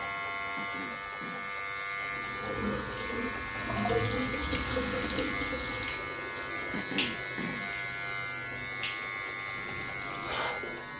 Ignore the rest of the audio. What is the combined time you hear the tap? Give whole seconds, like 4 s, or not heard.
9 s.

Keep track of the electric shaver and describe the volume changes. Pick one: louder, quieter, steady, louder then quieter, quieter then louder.
steady.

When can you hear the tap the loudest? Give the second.
4 s.